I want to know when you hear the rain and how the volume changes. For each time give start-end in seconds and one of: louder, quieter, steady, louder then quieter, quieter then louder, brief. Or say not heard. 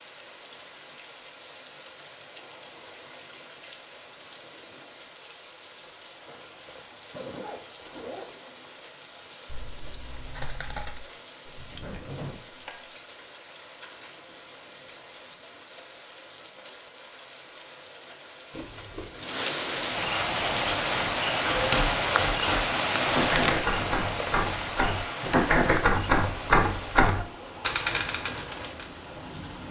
0.0-29.6 louder then quieter.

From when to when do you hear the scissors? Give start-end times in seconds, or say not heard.
9.5-11.1, 18.5-19.2.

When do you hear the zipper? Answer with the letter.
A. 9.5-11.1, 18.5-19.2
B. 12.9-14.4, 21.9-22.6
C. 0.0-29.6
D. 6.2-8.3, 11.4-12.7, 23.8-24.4
D.